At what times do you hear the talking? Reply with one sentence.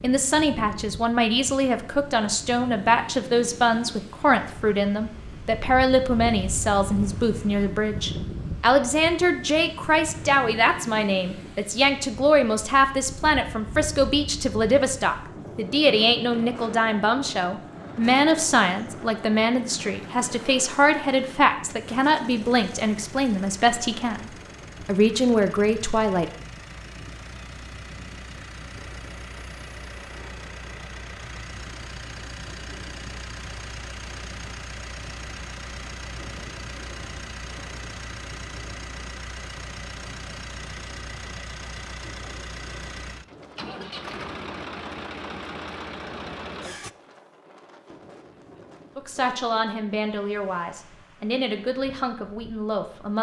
The talking can be heard from 0.0 to 26.3 s and from 49.0 to 53.1 s.